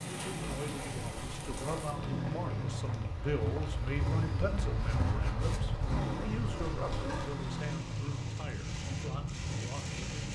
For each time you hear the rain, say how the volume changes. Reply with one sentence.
You can hear the rain from 0.0 to 10.3 s, getting quieter then louder.